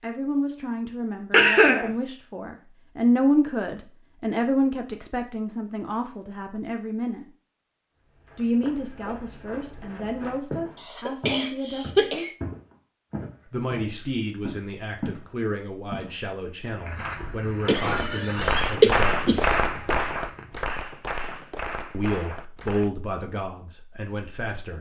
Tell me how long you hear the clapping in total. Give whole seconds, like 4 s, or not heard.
5 s.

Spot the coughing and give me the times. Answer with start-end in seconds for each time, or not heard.
1.3-1.9, 10.8-12.3, 17.6-19.4.